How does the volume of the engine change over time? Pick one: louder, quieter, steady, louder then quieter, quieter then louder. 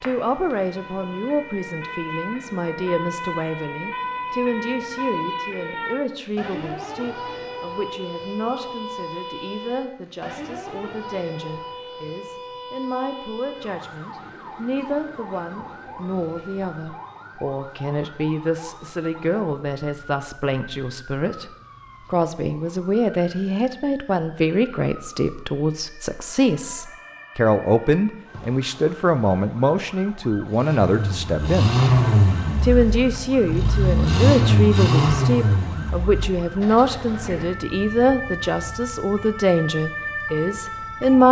quieter.